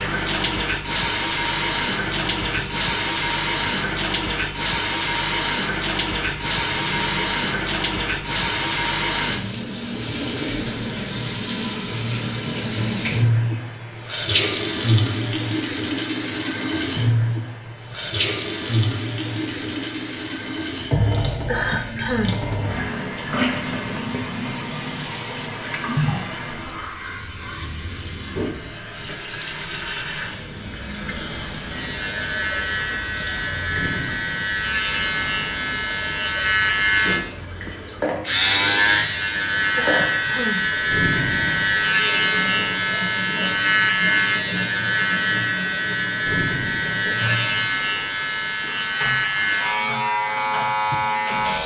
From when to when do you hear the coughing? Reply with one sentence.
The coughing can be heard from 21.4 to 22.4 s and from 39.8 to 40.6 s.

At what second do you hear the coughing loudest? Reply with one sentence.
The loudest moment of the coughing is at 22 seconds.